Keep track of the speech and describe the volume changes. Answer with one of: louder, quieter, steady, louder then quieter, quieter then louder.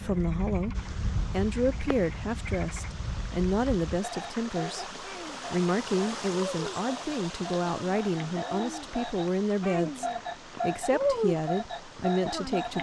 steady.